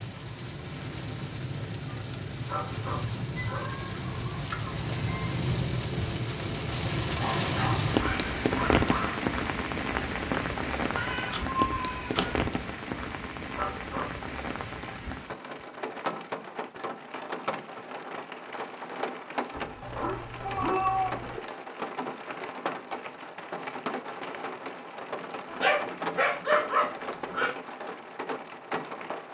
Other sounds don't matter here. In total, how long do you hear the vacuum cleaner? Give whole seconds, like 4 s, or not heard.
not heard.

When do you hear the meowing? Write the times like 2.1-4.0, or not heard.
3.4-5.3, 10.9-12.4, 19.8-21.4.